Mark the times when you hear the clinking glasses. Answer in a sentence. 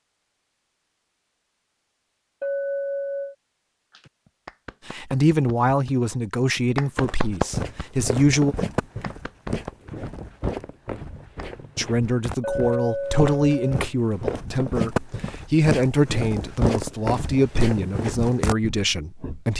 You can hear the clinking glasses from 2.4 to 3.4 s and from 12.4 to 13.8 s.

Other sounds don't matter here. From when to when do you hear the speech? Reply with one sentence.
You can hear the speech from 4.8 to 8.6 s and from 11.8 to 19.5 s.